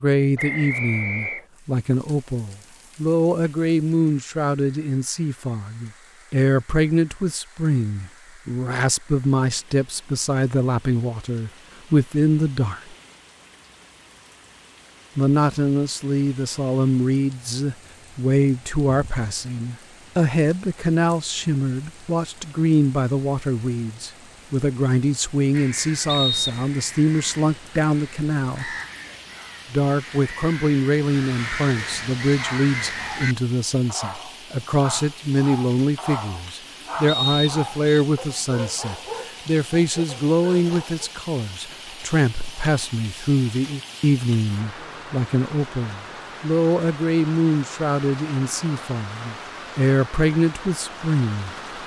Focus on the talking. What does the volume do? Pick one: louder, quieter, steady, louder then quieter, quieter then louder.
steady.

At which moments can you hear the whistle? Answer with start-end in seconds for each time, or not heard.
0.3-1.4, 26.1-26.6, 37.0-38.0.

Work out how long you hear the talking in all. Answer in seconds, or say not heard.
48 s.